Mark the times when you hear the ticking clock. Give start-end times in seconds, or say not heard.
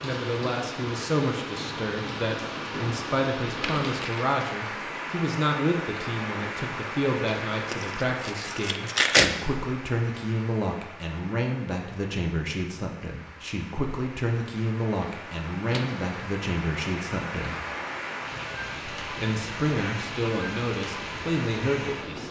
not heard.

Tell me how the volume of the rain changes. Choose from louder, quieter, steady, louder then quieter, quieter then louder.
quieter then louder.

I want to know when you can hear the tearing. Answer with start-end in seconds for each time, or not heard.
3.6-4.2, 7.7-9.3, 14.9-16.2.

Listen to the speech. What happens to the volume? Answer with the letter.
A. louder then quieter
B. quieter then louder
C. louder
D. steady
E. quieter
D.